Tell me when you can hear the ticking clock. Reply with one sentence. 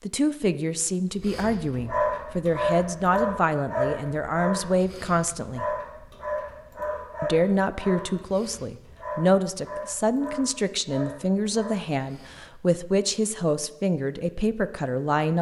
The ticking clock can't be heard in this clip.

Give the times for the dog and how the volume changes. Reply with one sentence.
You can hear the dog from 1.1 to 12.6 s, getting quieter.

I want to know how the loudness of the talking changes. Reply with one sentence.
The loudness of the talking stays about the same.